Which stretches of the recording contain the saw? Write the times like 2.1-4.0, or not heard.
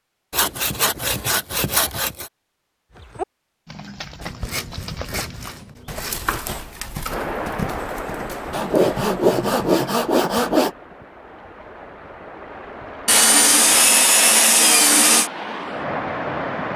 0.3-2.3, 4.2-6.3, 8.5-10.7, 13.1-15.3.